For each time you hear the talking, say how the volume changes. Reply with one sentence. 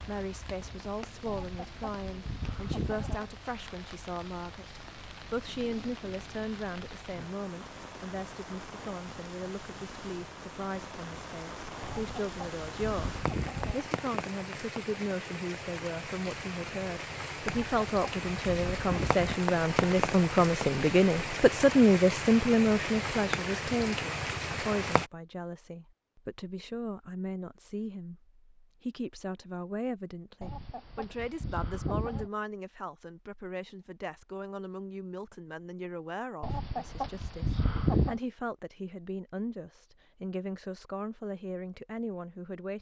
You can hear the talking from 0.0 to 42.7 s, getting louder then quieter.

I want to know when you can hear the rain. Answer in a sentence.
The rain can be heard from 0.0 to 25.1 s.